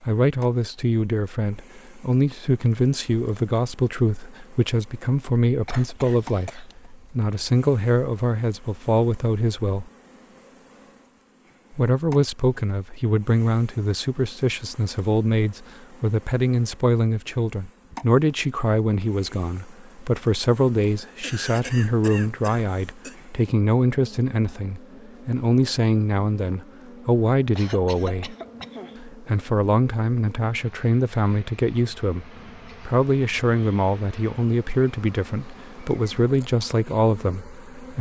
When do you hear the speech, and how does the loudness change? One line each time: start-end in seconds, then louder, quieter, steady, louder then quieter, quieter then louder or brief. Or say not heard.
0.0-9.9 steady
11.7-28.4 steady
29.0-37.9 steady.